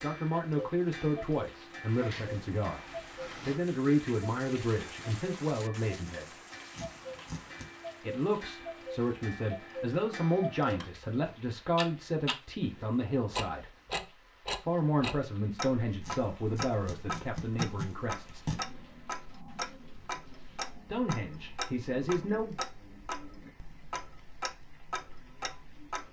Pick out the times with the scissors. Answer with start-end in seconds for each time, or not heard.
6.7-7.7, 16.0-18.6.